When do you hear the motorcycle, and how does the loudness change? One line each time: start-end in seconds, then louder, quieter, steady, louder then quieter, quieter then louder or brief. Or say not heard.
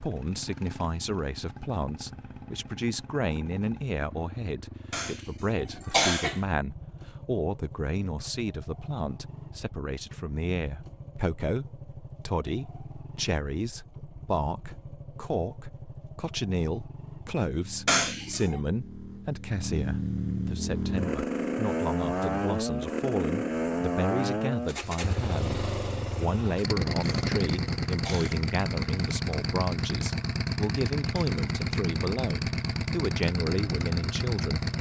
0.0-34.7 louder.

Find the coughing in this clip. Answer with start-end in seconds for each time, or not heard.
4.9-6.4, 17.9-18.6, 27.0-28.4.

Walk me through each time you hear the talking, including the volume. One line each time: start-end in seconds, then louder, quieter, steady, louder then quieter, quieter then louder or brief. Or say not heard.
0.0-34.6 steady.